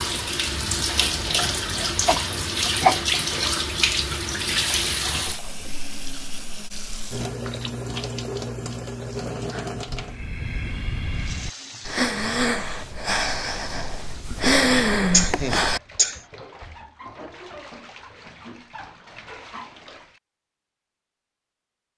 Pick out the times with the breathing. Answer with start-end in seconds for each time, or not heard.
9.5-15.8.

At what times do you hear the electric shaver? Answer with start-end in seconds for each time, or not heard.
not heard.